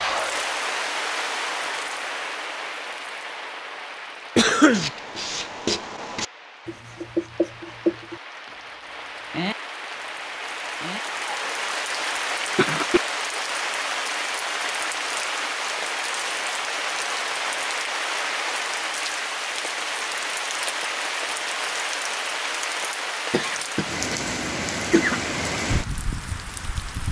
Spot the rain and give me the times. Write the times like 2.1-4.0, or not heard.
0.0-27.0.